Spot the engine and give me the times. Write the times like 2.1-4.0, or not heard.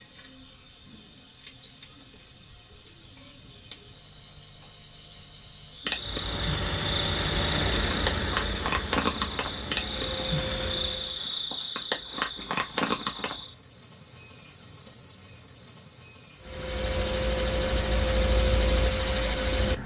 5.9-11.2, 16.4-19.8.